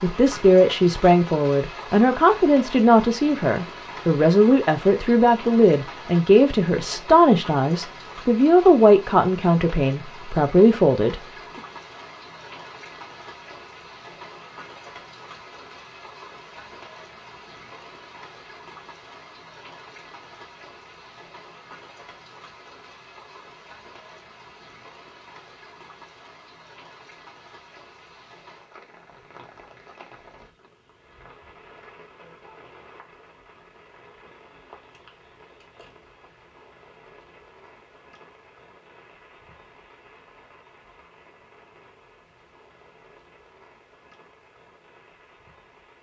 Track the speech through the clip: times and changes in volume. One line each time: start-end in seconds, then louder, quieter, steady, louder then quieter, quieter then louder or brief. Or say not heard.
0.0-11.2 steady.